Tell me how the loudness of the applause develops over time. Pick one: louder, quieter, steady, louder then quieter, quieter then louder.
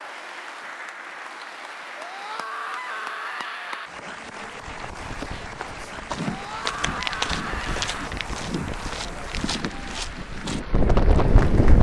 steady.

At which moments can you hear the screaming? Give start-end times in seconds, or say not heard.
1.9-3.9, 6.2-8.1.